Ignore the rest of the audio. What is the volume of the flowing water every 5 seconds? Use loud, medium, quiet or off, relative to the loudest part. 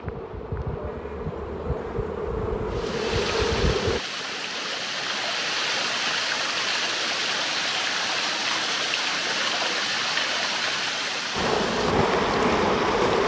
medium, loud, loud.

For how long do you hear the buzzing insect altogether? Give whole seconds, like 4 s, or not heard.
6 s.